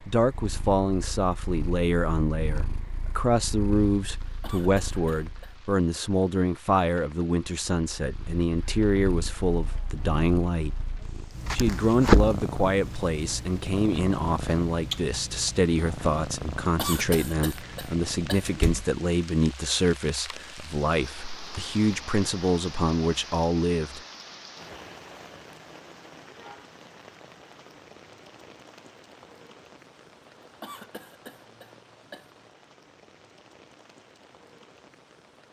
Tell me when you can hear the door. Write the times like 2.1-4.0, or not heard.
18.4-18.9.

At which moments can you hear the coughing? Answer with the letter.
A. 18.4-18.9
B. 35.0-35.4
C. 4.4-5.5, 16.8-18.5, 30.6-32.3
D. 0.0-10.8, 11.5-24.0
C.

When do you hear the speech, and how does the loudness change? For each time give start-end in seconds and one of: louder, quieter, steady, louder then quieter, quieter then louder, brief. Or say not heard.
0.0-10.8 steady
11.5-24.0 steady.